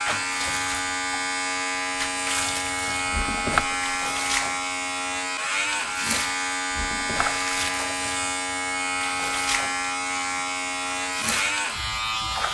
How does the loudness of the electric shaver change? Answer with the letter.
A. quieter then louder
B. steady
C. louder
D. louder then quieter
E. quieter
B.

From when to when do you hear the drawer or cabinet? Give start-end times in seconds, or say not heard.
3.1-4.0, 6.7-7.4.